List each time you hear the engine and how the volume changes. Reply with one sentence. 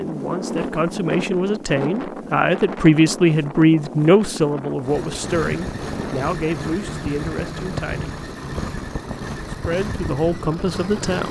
The engine can be heard from 4.8 to 11.2 s, at a steady volume.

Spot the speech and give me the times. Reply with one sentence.
The speech can be heard from 0.0 to 8.2 s and from 9.7 to 11.2 s.